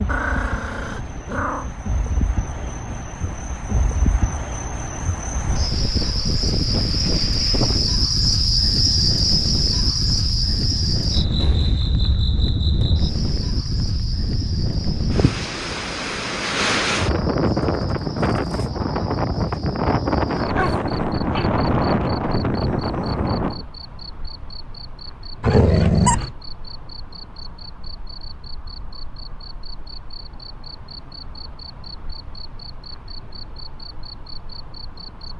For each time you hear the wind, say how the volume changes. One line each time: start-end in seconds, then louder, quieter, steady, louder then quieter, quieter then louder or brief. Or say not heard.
0.0-23.6 louder.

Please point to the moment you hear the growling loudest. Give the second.
26 s.